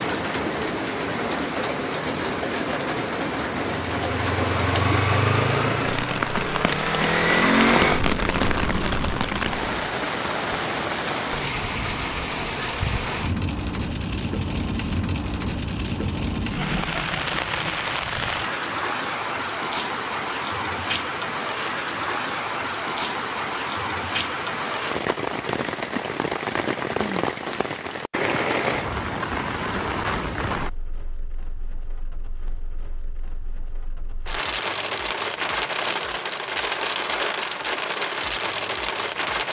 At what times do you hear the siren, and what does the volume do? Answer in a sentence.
You can't hear the siren here.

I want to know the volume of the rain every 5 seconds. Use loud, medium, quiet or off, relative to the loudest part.
loud, loud, loud, loud, loud, loud, medium, loud.